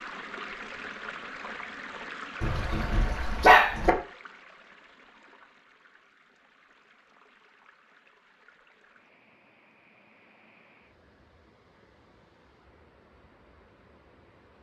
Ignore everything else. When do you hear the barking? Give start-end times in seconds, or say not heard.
2.4-3.9.